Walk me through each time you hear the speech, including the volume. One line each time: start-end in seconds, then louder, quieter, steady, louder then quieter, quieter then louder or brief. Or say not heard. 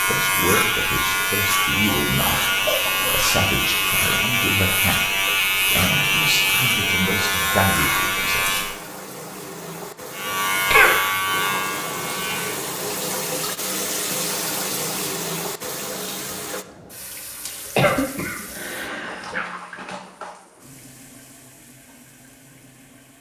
0.0-8.6 steady.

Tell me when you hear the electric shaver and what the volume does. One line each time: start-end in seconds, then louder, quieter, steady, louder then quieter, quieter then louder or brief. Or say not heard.
0.0-8.8 steady
10.1-12.6 brief.